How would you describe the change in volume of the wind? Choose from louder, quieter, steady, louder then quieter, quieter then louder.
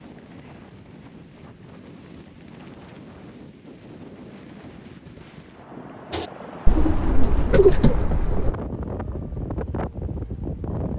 louder.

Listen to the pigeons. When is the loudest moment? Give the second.
8 s.